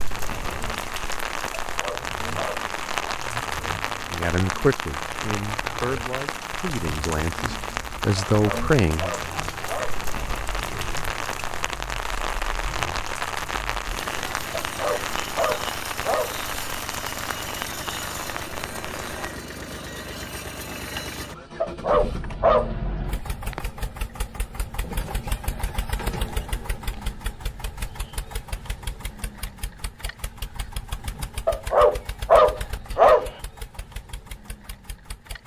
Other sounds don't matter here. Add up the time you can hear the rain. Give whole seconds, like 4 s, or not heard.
19 s.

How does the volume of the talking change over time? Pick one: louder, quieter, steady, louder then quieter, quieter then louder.
quieter then louder.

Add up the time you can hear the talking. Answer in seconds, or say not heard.
5 s.